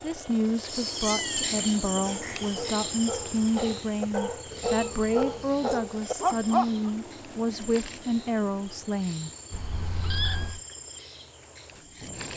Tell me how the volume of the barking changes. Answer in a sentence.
The volume of the barking goes up.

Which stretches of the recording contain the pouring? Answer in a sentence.
The pouring can't be heard in this clip.